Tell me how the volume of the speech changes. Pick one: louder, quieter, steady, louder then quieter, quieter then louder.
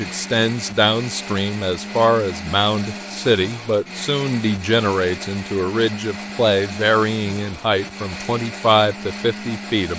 steady.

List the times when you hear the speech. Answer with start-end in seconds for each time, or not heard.
0.0-9.9.